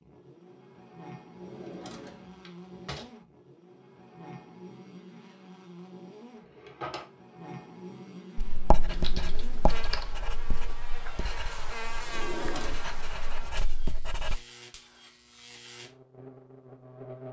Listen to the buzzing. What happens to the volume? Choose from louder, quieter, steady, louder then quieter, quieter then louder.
louder then quieter.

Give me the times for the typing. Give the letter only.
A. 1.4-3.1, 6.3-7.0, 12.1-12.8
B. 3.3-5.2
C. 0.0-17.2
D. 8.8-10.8
D.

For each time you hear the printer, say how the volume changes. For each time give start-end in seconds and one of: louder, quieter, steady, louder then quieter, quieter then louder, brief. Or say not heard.
not heard.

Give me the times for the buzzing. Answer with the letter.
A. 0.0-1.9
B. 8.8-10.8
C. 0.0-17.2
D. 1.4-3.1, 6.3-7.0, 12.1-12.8
C.